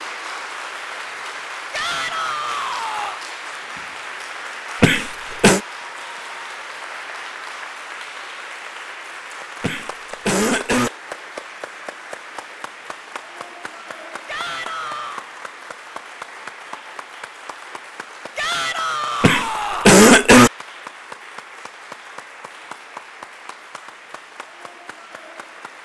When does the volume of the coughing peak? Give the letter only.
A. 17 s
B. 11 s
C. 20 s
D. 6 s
C.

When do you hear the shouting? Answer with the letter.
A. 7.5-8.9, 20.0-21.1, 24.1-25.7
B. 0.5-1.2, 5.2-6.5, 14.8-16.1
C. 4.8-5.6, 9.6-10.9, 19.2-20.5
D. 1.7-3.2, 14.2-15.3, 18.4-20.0
D.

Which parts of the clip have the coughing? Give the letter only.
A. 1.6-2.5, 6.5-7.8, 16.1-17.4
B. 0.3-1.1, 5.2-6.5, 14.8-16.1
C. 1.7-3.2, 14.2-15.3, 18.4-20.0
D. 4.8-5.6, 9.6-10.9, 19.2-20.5
D.